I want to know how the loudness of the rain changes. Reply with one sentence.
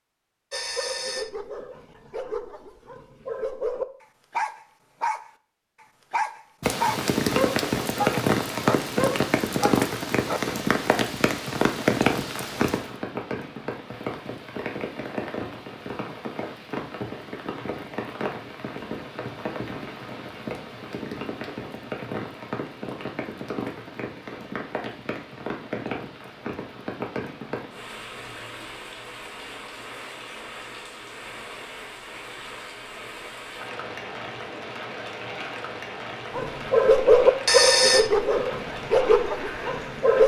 The volume of the rain goes down.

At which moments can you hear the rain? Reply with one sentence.
You can hear the rain from 6.6 to 40.2 s.